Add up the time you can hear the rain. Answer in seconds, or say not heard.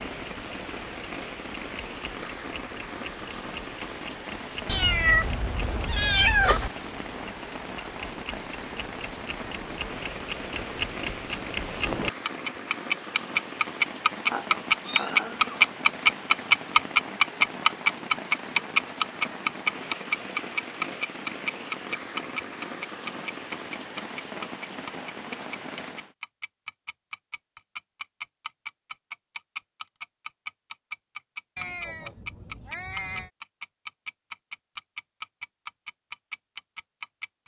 26 s.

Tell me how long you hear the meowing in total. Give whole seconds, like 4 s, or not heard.
5 s.